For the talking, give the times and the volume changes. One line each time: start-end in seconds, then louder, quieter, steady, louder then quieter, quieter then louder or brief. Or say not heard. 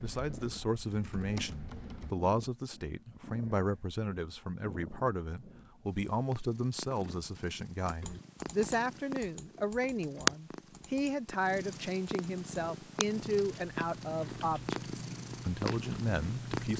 0.0-16.7 steady.